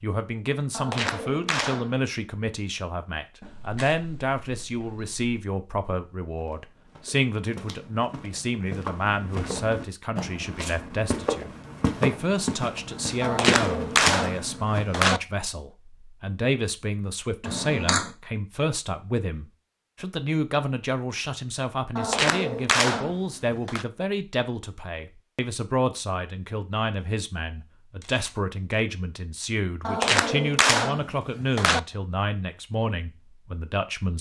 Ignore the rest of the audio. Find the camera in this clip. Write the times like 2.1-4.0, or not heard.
3.4-5.2, 17.4-18.1, 28.0-28.8.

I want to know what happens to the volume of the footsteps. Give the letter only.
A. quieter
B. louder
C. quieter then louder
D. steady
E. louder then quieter
B.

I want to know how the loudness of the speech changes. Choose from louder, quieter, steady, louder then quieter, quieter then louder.
steady.